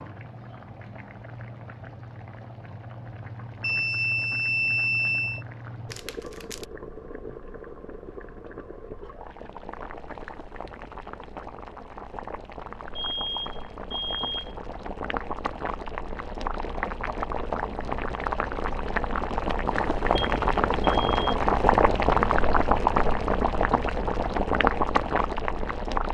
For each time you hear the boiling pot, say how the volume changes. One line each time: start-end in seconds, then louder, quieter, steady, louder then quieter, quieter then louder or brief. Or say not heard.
0.0-26.0 louder.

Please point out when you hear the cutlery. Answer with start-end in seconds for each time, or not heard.
not heard.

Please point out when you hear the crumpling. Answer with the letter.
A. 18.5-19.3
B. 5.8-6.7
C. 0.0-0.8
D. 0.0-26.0
B.